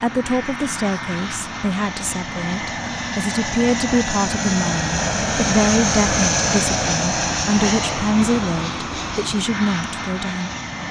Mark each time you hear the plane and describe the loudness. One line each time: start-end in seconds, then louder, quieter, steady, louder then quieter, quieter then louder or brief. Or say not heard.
0.0-10.8 louder then quieter.